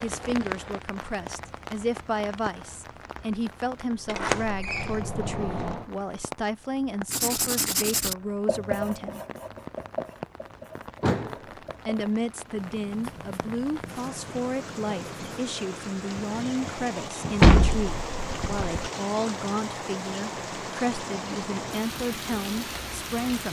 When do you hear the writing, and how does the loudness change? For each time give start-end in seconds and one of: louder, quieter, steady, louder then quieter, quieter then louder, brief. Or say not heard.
7.0-15.4 quieter.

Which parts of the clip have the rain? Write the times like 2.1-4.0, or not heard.
0.0-23.4.